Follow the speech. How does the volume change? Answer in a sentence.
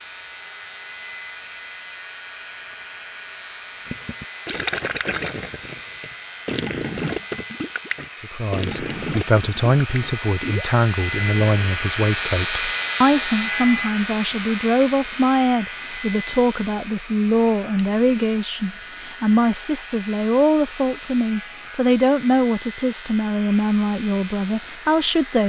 The loudness of the speech stays about the same.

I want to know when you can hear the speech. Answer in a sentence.
You can hear the speech from 8.2 to 25.4 s.